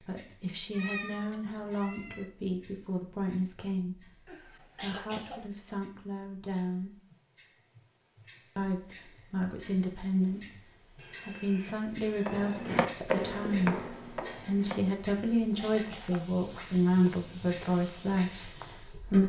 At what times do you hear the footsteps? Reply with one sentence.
You can hear the footsteps from 12.2 to 19.0 s.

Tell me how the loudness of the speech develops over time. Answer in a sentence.
The loudness of the speech goes up.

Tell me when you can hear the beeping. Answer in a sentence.
The beeping can't be heard in this clip.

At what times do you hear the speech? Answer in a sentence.
The speech can be heard from 0.0 to 7.0 s and from 8.6 to 19.2 s.